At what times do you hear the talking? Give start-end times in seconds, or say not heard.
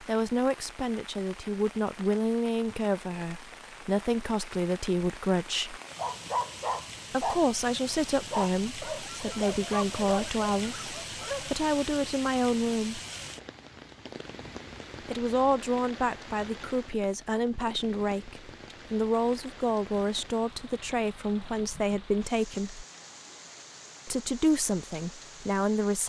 0.0-5.8, 7.1-13.0, 15.1-22.9, 24.1-26.0.